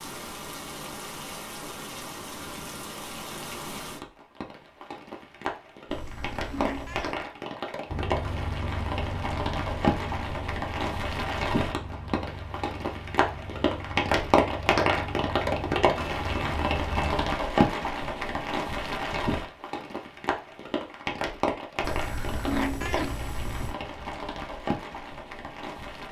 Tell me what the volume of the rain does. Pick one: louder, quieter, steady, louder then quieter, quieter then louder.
louder then quieter.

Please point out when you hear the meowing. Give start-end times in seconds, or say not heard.
5.9-7.2, 21.8-23.8.